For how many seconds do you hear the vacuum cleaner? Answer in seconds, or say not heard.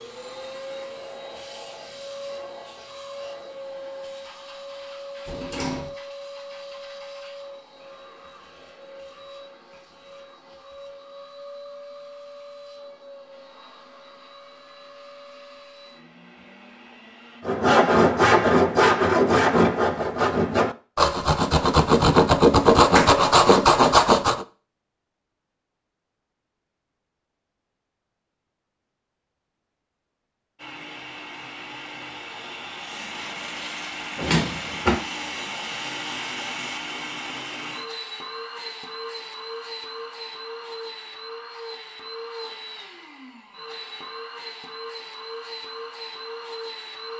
34 s.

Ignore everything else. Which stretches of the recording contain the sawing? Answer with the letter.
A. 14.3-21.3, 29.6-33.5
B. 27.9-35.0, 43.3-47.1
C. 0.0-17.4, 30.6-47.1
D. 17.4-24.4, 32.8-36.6
D.